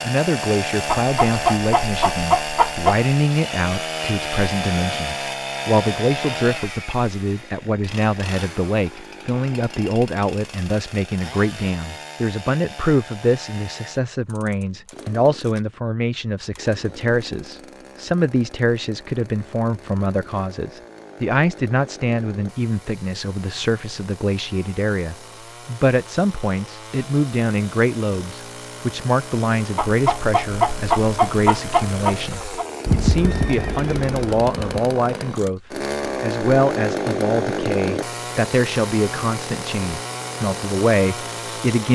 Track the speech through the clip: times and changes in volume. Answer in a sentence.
The speech can be heard from 0.0 to 41.8 s, at a steady volume.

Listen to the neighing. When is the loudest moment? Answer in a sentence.
The loudest moment of the neighing is at 33 seconds.